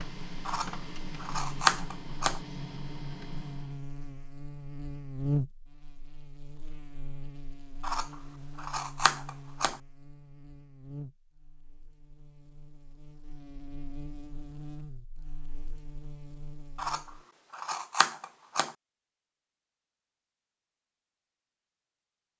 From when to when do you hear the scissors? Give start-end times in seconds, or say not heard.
0.5-2.4, 7.8-9.8, 16.8-18.8.